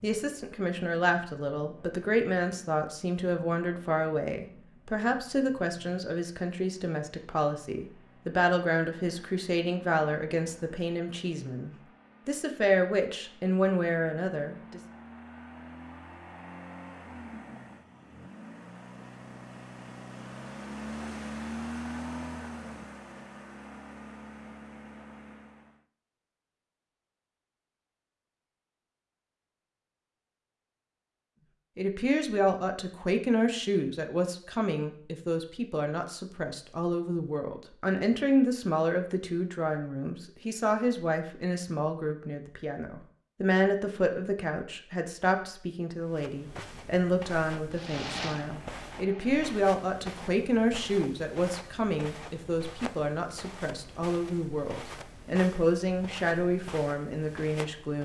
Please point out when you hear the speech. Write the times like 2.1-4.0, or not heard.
0.0-14.8, 31.8-57.9.